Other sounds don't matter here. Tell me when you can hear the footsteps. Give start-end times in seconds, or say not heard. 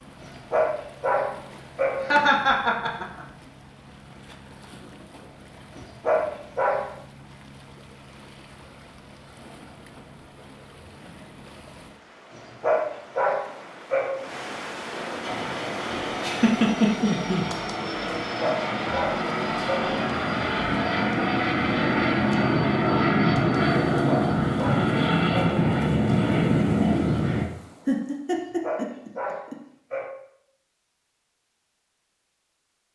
not heard.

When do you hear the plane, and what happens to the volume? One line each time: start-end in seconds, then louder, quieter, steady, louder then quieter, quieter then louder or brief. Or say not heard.
15.2-27.4 louder.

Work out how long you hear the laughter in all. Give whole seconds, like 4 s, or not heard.
4 s.